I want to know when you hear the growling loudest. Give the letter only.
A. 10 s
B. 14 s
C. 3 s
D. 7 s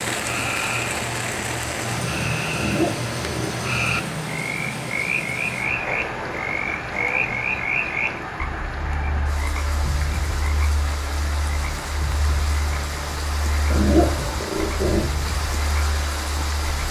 B.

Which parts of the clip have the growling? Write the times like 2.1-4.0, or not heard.
2.5-3.6, 5.8-7.4, 13.7-15.1.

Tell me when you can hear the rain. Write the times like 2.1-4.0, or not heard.
0.0-16.8.